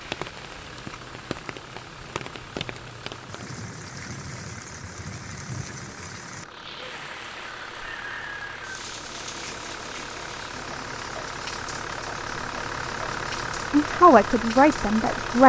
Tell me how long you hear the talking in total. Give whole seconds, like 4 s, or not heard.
2 s.